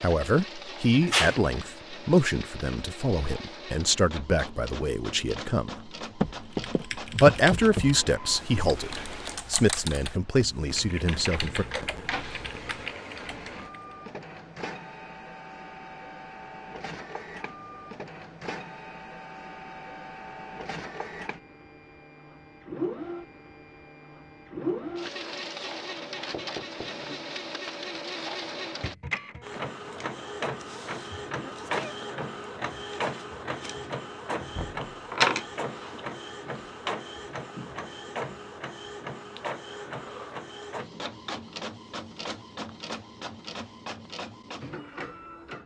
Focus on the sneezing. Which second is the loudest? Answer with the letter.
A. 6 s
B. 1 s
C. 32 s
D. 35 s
B.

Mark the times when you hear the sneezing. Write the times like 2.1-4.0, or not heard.
1.0-1.5, 31.4-31.9.